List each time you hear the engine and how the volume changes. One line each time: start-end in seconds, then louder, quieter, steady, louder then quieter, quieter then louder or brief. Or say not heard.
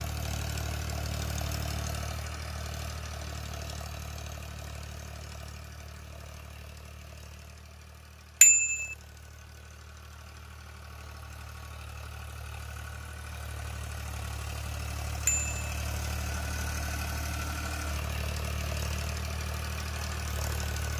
0.0-20.9 quieter then louder.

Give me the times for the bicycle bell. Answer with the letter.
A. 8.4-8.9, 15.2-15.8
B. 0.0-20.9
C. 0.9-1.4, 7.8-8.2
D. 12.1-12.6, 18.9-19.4
A.